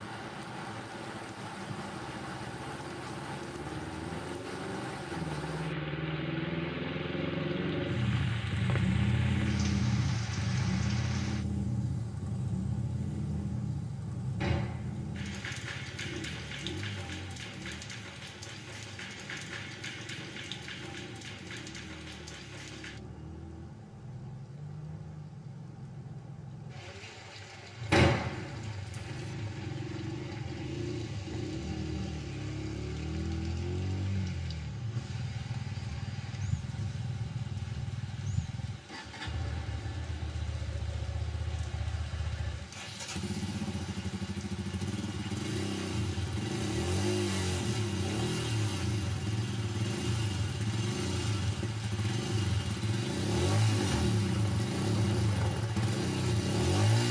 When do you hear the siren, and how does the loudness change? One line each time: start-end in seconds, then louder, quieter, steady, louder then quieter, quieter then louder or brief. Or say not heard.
not heard.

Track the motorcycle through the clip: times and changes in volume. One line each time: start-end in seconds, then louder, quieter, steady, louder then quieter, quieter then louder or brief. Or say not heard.
0.0-23.8 louder then quieter
27.8-57.0 louder.